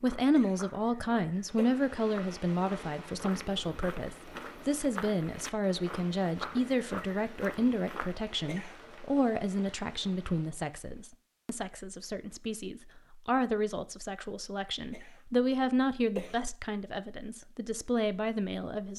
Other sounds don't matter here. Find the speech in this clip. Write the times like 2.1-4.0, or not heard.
0.0-18.9.